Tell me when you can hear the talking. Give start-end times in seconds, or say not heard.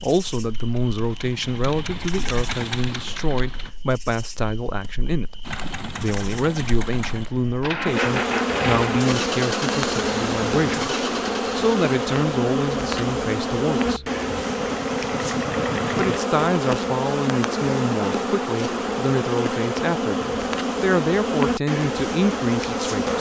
0.0-14.1, 15.9-23.1.